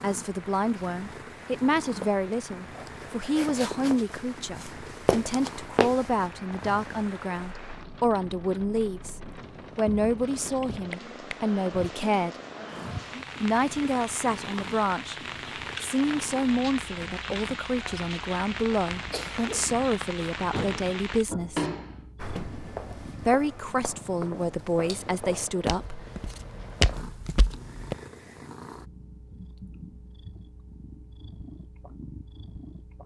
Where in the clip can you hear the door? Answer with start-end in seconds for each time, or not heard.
20.5-22.4.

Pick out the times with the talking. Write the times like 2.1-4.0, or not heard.
0.0-12.3, 13.4-15.2, 15.8-21.6, 23.2-26.1.